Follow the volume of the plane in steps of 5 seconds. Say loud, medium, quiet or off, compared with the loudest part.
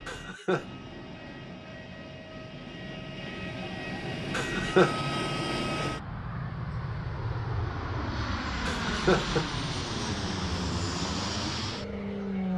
medium, loud, loud.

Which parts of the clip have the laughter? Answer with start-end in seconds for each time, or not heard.
0.1-0.7, 4.3-5.0, 8.7-9.4.